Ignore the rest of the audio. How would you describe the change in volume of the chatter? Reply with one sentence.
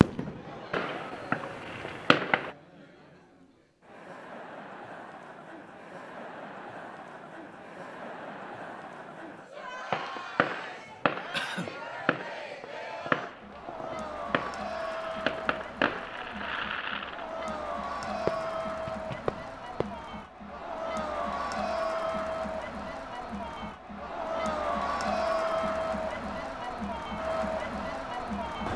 The volume of the chatter goes up.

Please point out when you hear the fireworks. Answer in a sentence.
You can hear the fireworks from 0.0 to 2.5 s and from 9.9 to 19.9 s.